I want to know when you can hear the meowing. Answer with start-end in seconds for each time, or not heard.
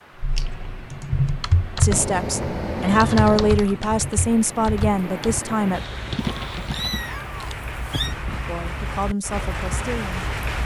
1.9-3.6, 6.2-8.2.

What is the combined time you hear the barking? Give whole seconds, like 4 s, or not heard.
not heard.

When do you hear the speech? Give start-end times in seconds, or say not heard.
1.8-5.8, 8.4-10.6.